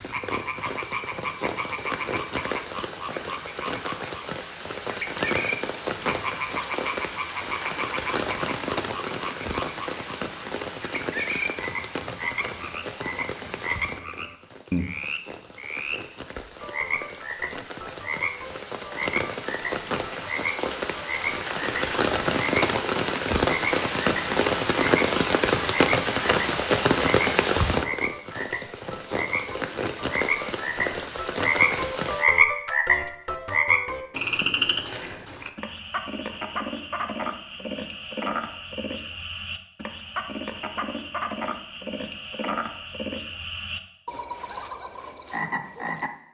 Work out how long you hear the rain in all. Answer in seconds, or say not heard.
32 s.